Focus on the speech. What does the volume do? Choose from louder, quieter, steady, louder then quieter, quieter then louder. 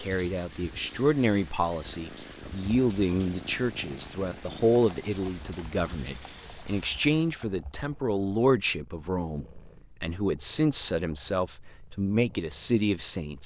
steady.